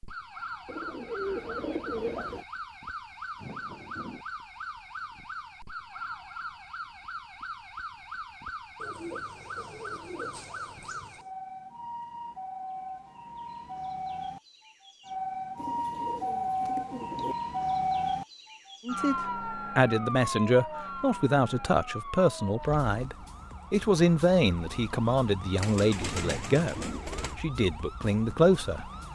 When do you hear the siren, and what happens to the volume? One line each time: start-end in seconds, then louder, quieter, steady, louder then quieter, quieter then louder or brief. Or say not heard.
0.0-29.1 louder then quieter.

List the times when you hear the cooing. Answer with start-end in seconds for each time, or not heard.
0.7-2.5, 8.8-11.3, 15.6-17.4, 25.6-27.4.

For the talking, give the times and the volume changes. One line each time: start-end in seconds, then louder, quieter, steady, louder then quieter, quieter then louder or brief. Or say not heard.
18.9-28.9 steady.